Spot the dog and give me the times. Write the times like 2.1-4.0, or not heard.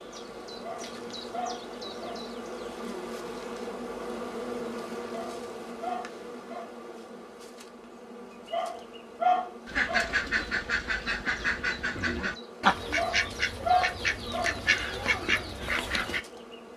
0.6-2.2, 5.1-6.7, 8.5-10.1, 12.9-14.8.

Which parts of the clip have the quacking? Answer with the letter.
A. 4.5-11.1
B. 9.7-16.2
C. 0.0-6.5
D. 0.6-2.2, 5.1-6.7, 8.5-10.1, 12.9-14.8
B.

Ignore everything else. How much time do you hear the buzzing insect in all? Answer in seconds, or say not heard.
17 s.